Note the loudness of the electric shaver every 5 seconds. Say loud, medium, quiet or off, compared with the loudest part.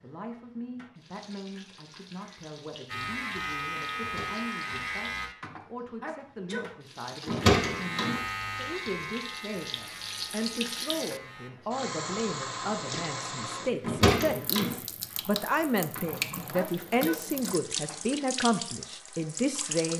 loud, loud, quiet, off.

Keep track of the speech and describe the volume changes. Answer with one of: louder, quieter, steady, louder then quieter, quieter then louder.
louder.